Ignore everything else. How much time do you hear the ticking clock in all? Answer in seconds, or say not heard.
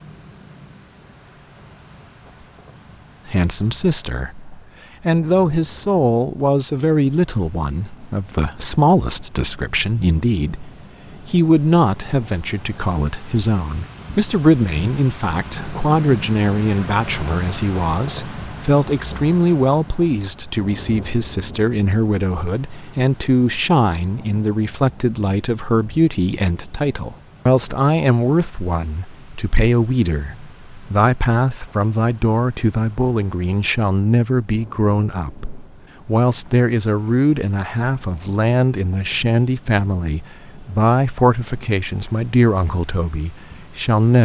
not heard.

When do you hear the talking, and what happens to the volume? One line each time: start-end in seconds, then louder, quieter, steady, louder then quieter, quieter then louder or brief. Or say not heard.
3.2-44.2 steady.